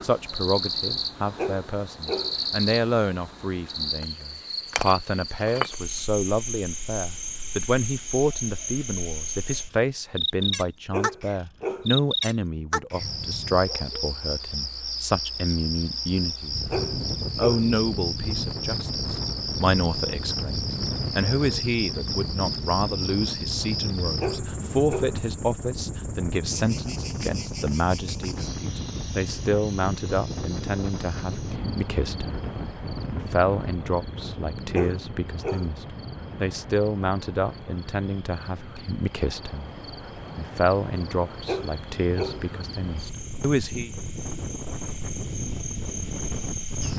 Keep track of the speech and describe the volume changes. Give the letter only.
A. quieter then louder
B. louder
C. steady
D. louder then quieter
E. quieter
C.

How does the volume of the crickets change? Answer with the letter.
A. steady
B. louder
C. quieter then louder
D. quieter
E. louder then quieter
D.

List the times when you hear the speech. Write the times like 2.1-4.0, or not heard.
0.0-32.4, 33.1-39.7, 40.4-43.9.